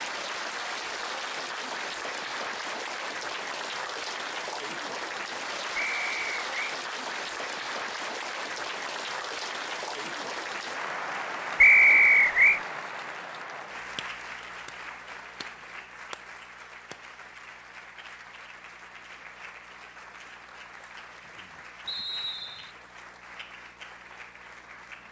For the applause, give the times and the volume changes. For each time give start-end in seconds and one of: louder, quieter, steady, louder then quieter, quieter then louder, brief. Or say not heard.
0.0-25.0 quieter.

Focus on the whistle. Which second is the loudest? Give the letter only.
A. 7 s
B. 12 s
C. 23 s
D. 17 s
B.